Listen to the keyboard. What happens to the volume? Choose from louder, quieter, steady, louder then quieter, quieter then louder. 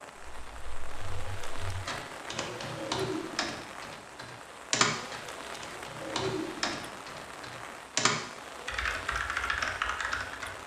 louder.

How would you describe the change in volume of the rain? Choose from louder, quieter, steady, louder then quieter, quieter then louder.
steady.